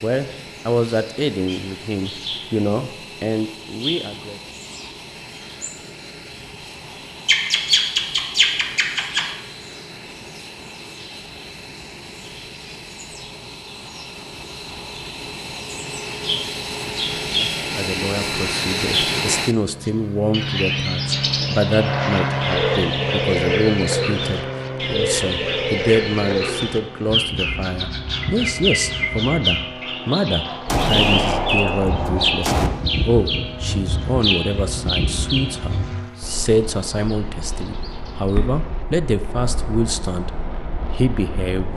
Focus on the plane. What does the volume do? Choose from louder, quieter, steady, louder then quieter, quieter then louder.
louder then quieter.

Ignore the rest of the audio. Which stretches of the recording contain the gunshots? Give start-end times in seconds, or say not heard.
30.6-32.7.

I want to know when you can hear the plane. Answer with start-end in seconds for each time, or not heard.
0.0-41.7.